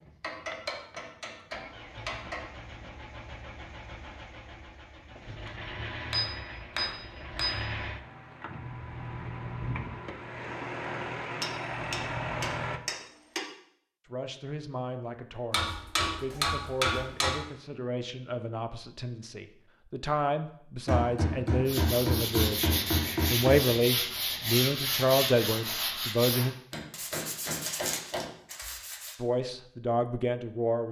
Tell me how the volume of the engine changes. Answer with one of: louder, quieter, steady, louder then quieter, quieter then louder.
louder.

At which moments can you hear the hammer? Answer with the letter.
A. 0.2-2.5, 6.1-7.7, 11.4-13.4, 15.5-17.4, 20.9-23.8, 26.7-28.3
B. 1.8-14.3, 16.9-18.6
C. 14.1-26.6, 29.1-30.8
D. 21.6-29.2
A.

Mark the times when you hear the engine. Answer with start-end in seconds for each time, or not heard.
0.0-12.8.